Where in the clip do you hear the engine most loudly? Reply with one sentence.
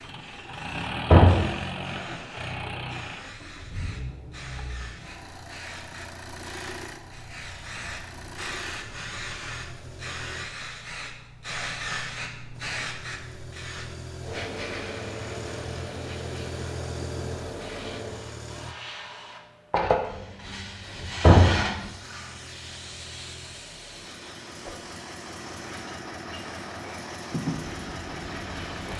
The volume of the engine peaks at 1 second.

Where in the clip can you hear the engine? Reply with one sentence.
The engine can be heard from 0.0 to 10.4 s, from 12.5 to 18.8 s and from 20.8 to 28.9 s.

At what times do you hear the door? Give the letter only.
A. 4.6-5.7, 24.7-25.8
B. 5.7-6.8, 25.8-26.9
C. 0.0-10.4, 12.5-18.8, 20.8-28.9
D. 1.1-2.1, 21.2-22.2
D.